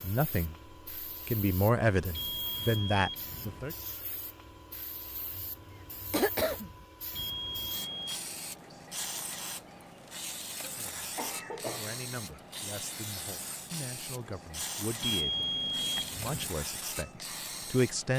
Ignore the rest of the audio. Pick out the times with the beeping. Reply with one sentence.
You can hear the beeping from 2.1 to 3.6 s, from 7.1 to 8.2 s and from 15.0 to 16.5 s.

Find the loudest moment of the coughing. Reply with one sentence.
The loudest moment of the coughing is at 6 seconds.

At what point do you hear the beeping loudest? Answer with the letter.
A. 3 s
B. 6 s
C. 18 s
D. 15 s
D.